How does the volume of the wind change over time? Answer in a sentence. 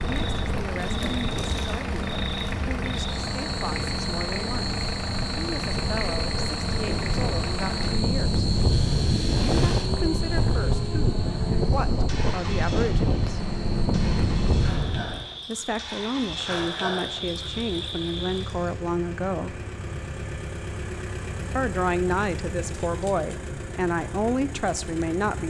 The volume of the wind goes up.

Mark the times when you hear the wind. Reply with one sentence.
You can hear the wind from 0.0 to 15.2 s.